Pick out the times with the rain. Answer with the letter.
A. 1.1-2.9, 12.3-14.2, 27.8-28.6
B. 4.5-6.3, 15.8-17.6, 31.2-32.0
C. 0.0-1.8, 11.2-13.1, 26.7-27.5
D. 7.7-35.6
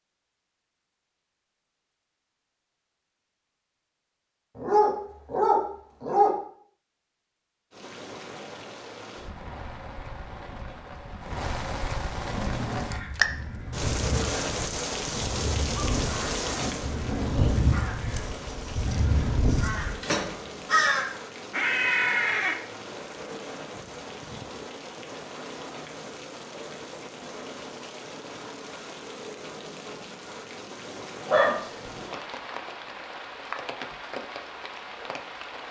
D.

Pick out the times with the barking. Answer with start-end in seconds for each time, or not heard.
4.5-6.3, 15.8-17.6, 31.2-32.0.